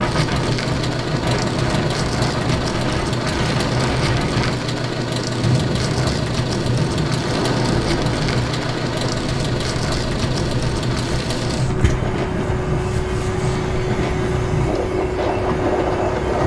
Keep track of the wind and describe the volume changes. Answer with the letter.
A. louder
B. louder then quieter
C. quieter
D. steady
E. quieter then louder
D.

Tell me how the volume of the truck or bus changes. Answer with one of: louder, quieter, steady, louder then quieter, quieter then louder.
steady.